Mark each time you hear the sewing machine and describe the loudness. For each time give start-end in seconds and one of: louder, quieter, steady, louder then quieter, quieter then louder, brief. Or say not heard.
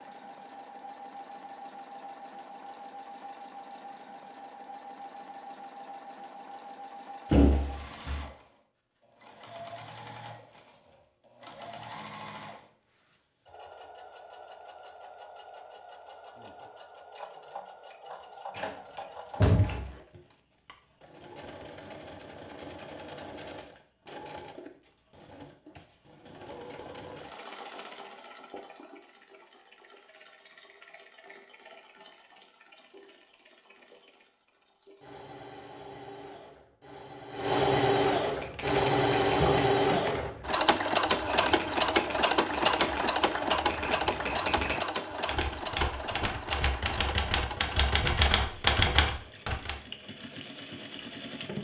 0.0-51.6 louder.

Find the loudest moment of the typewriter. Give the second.
49 s.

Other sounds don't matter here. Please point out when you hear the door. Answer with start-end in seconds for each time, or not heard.
7.3-8.2, 18.6-19.9, 39.3-40.0.